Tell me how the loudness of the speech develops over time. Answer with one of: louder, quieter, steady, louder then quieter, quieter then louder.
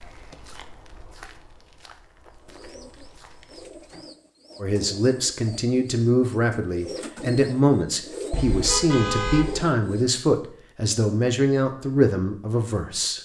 steady.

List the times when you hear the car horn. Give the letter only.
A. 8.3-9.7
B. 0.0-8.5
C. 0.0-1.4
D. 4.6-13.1
A.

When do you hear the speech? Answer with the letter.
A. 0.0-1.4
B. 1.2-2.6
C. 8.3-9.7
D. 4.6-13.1
D.